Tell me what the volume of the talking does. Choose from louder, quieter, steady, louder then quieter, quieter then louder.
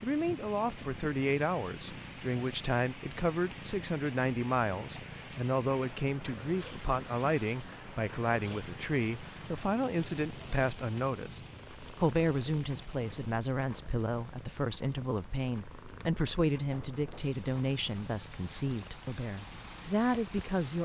steady.